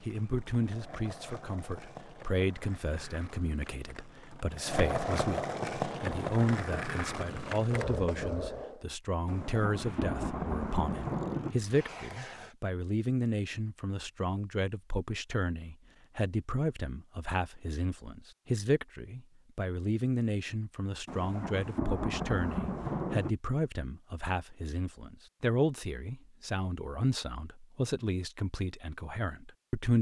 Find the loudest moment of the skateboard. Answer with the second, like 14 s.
5 s.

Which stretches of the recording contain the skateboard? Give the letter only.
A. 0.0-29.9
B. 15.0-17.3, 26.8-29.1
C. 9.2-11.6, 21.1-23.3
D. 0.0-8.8
D.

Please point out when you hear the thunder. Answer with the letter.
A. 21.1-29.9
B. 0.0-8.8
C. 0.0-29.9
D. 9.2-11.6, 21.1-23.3
D.